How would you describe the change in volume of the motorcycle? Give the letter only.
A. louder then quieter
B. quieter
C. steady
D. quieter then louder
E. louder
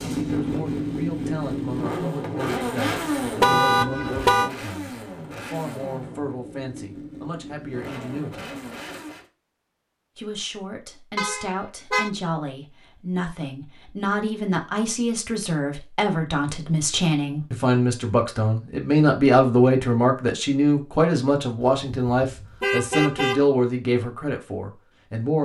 B.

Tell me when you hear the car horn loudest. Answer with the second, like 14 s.
4 s.